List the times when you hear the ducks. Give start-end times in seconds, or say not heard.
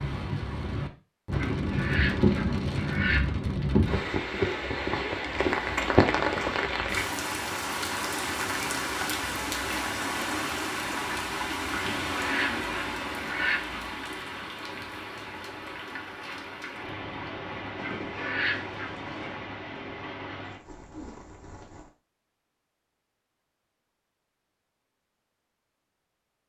1.3-3.2, 11.7-13.6, 17.8-19.4.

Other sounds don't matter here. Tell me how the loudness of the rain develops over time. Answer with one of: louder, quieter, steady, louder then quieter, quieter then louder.
quieter.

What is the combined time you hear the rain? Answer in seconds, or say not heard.
22 s.